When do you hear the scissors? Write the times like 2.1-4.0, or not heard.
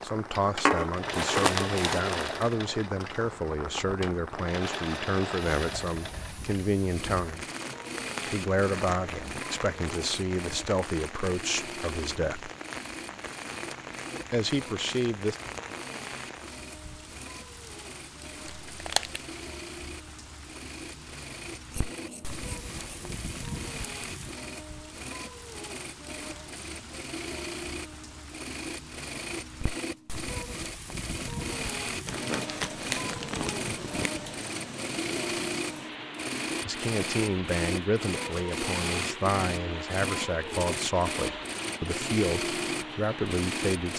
21.7-23.2.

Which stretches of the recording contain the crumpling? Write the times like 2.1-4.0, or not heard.
0.7-2.4, 18.7-19.2, 32.0-34.1.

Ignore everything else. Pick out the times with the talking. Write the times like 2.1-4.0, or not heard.
0.0-7.5, 8.2-12.5, 14.3-15.3, 36.6-43.9.